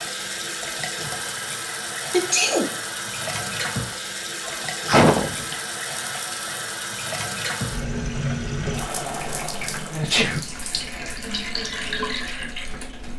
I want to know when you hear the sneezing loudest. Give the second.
5 s.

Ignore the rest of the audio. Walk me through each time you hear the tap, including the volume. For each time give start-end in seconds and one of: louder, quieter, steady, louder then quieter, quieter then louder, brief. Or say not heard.
0.0-13.1 steady.